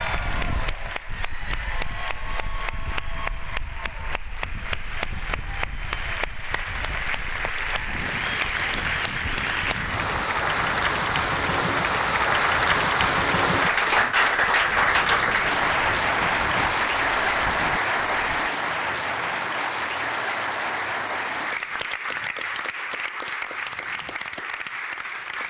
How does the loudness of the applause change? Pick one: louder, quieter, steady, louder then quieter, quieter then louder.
louder then quieter.